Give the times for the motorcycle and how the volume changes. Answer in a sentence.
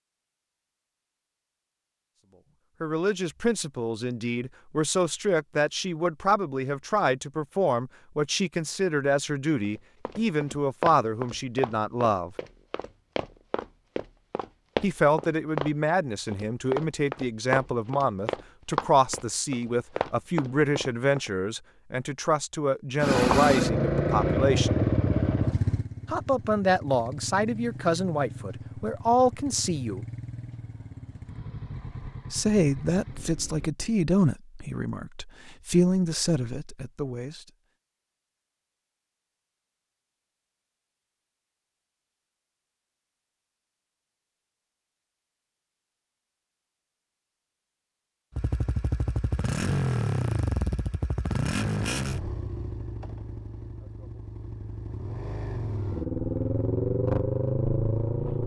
You can hear the motorcycle from 22.9 to 33.8 s, getting quieter; and from 48.3 to 58.4 s, getting quieter then louder.